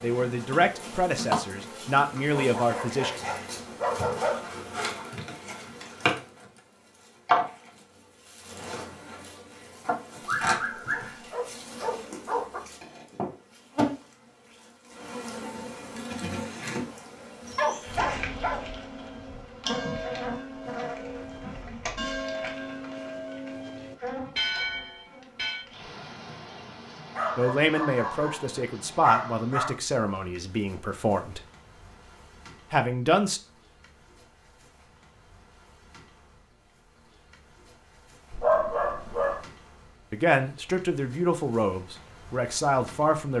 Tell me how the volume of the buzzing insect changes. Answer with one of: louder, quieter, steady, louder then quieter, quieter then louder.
quieter.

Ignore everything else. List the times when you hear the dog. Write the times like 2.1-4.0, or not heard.
2.3-4.9, 10.2-12.6, 17.6-18.8, 27.1-29.8, 38.3-39.4.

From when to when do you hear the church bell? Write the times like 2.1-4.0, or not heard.
18.2-25.6.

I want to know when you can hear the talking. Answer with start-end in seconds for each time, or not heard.
0.0-3.1, 27.4-31.4, 32.7-33.4, 40.1-43.3.